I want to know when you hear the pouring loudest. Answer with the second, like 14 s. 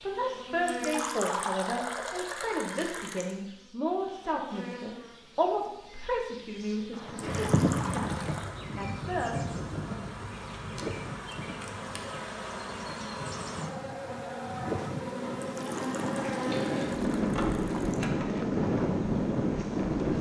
1 s.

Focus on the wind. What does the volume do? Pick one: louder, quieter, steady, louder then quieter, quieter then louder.
quieter then louder.